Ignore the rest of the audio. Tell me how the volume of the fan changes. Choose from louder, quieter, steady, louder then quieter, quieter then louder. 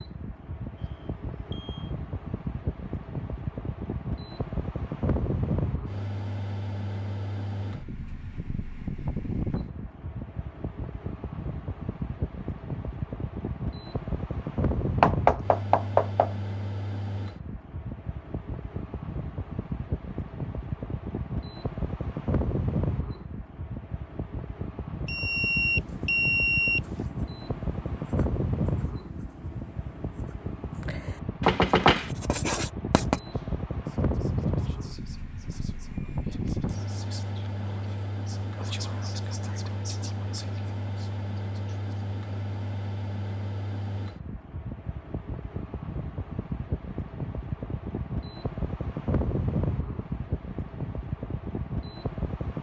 steady.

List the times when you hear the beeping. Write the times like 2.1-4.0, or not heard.
0.8-1.9, 25.1-27.1, 35.9-36.7.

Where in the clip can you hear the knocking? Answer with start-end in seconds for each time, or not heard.
15.0-16.3, 31.4-32.1.